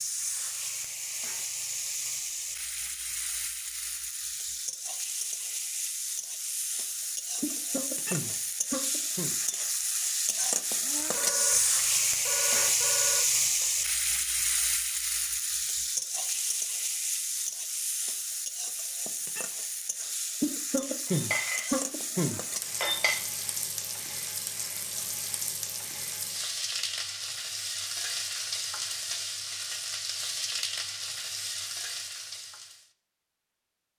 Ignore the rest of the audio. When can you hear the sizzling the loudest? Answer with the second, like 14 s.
13 s.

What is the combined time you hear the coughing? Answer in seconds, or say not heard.
4 s.